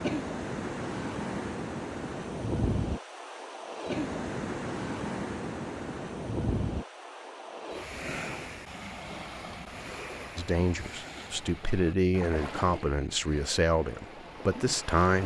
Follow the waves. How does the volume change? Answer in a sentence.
The loudness of the waves goes down.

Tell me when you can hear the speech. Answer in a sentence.
You can hear the speech from 10.3 to 15.2 s.